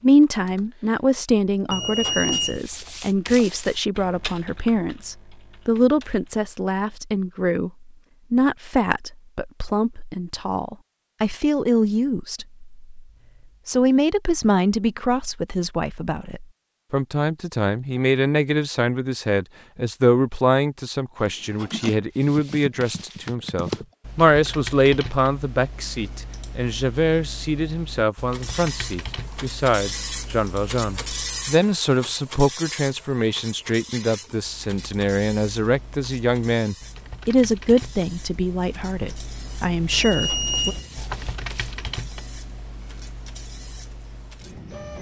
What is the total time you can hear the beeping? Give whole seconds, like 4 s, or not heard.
2 s.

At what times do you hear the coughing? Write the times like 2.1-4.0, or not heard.
not heard.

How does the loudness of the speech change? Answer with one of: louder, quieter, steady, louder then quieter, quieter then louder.
steady.